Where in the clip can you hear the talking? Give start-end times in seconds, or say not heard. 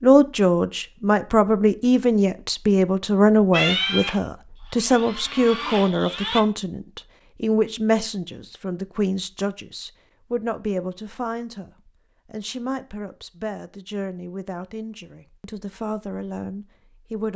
0.0-17.3.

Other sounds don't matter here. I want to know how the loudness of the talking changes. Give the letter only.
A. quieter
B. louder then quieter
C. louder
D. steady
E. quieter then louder
A.